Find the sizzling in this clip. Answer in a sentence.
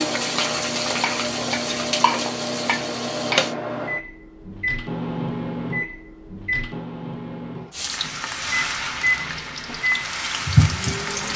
The sizzling can be heard from 0.0 to 3.5 s and from 7.8 to 11.3 s.